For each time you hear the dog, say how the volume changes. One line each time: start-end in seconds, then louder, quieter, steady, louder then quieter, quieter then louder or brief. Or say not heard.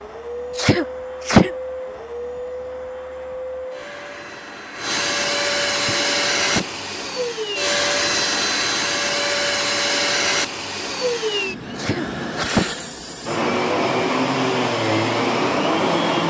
not heard.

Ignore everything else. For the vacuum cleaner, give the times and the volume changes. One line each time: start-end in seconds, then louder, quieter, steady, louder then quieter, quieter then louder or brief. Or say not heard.
0.0-16.2 louder.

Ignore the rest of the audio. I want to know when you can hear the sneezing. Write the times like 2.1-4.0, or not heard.
0.6-1.5, 5.8-6.7, 11.8-12.7.